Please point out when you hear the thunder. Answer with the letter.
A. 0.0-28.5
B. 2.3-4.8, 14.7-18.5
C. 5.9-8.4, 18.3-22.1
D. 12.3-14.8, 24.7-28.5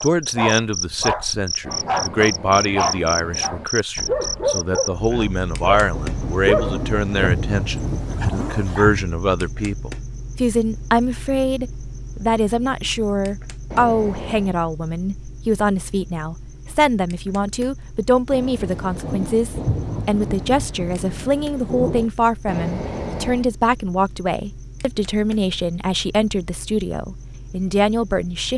C.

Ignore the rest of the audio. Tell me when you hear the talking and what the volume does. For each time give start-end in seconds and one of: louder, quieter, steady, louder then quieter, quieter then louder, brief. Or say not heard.
0.0-28.5 steady.